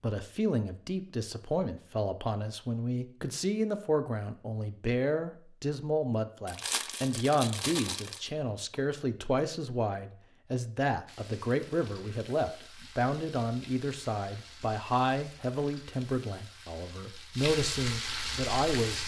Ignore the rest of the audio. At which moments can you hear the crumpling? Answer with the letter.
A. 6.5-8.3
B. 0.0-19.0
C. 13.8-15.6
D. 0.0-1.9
A.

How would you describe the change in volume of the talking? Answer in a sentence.
The volume of the talking stays about the same.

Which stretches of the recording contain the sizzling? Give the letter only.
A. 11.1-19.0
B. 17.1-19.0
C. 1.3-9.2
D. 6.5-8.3
A.